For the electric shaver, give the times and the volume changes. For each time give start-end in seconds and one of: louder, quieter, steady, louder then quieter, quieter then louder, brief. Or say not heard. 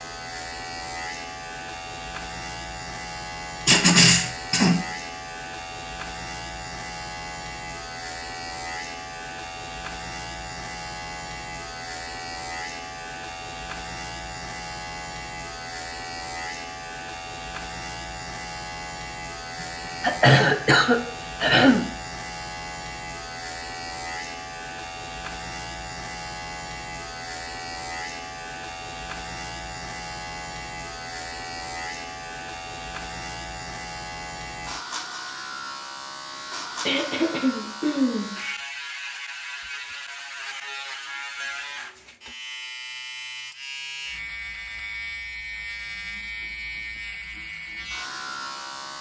0.0-48.9 steady.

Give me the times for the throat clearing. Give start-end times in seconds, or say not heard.
3.6-4.8, 20.0-21.9, 36.9-38.3.